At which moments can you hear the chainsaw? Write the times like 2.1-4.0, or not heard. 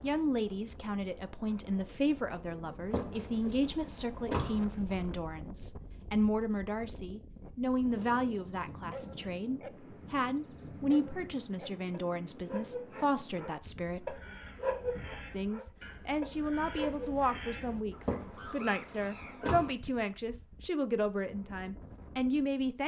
not heard.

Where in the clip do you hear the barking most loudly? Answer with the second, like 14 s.
15 s.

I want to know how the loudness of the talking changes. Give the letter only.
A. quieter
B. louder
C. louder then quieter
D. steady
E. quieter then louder
D.